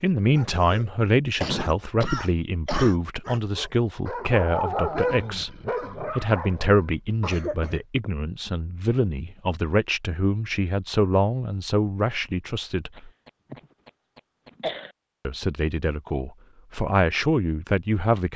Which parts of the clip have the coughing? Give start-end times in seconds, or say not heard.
1.4-3.0, 7.2-7.8, 12.9-14.9.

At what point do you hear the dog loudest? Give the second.
5 s.